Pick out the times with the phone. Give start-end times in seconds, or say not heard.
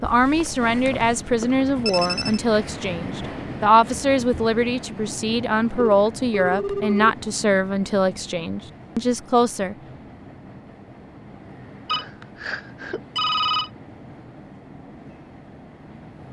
0.0-2.4, 5.8-7.2, 11.8-13.7.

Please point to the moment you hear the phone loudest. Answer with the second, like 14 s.
13 s.